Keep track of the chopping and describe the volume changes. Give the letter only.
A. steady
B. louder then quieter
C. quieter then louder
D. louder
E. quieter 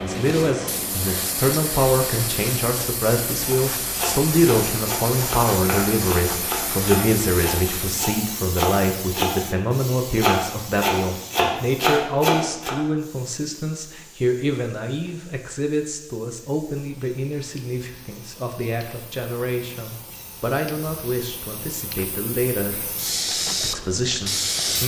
D.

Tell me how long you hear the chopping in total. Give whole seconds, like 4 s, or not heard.
9 s.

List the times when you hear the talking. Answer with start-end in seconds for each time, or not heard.
0.0-24.8.